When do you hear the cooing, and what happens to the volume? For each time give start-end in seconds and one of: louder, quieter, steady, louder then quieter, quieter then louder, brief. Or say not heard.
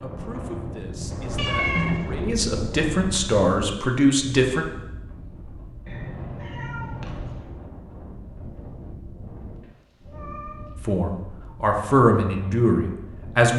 not heard.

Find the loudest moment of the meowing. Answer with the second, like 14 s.
2 s.